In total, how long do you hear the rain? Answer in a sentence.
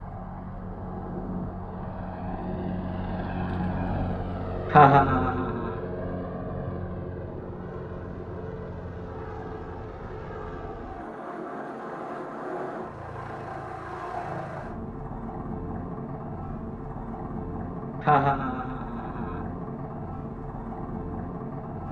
The rain can't be heard in this clip.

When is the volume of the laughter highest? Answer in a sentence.
The loudest moment of the laughter is at 5 seconds.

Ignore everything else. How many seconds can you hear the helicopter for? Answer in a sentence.
The helicopter can be heard for 22 seconds in total.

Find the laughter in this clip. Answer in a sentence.
The laughter can be heard from 4.7 to 5.8 s and from 18.0 to 19.4 s.